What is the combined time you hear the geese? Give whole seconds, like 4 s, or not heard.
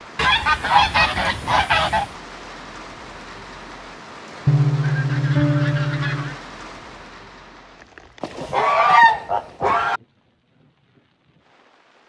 6 s.